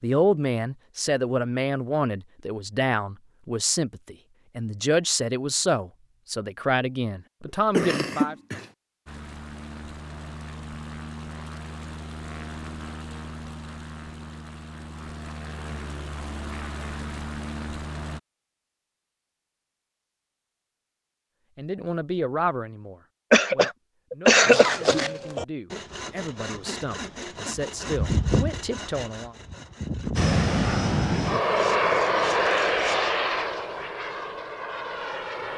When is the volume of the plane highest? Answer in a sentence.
The loudest moment of the plane is at 32 seconds.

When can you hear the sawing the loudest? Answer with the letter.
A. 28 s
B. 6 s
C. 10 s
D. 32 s
A.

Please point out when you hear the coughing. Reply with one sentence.
You can hear the coughing from 7.7 to 8.7 s and from 23.3 to 25.1 s.